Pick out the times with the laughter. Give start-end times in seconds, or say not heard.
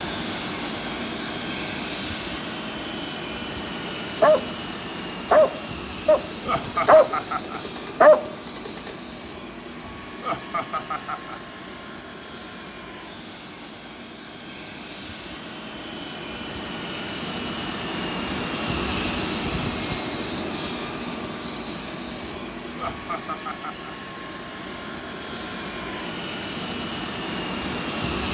6.5-7.7, 10.2-11.4, 22.8-23.9.